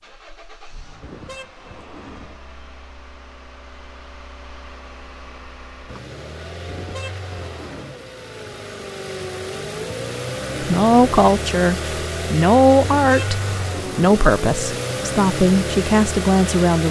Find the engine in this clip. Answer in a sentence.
The engine can be heard from 0.0 to 16.8 s.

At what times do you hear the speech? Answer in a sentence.
The speech can be heard from 10.6 to 16.8 s.